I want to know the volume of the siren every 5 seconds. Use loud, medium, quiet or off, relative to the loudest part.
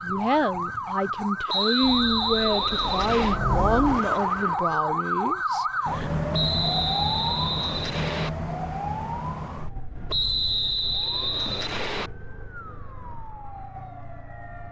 loud, loud, quiet.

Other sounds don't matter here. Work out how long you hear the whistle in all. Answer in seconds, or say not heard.
6 s.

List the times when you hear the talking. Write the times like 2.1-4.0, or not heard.
0.0-6.2.